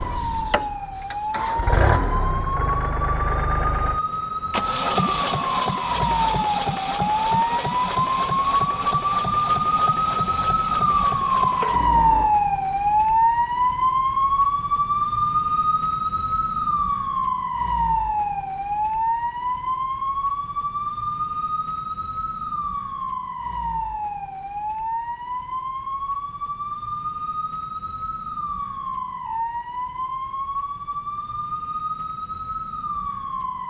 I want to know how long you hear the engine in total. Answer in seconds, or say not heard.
12 s.